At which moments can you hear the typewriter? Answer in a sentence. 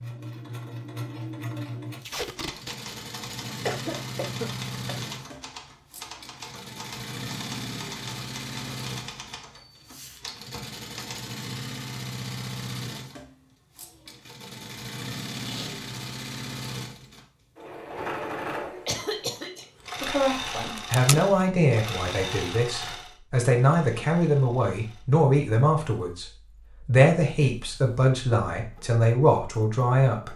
The typewriter can be heard from 2.0 to 11.2 s.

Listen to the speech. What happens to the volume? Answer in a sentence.
The loudness of the speech stays about the same.